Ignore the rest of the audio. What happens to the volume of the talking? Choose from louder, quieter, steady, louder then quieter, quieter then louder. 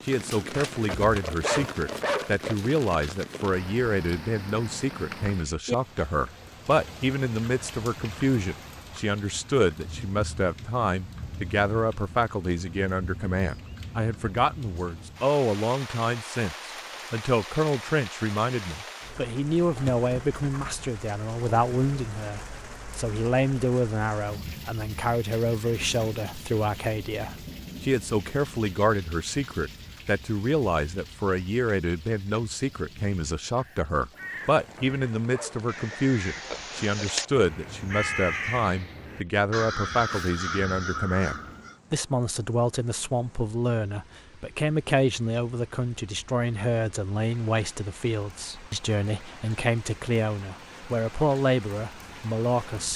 steady.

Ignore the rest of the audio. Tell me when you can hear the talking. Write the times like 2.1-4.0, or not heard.
0.0-52.9.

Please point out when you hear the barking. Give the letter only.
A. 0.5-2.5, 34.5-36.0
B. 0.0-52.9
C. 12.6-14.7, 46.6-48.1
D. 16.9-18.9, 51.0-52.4
A.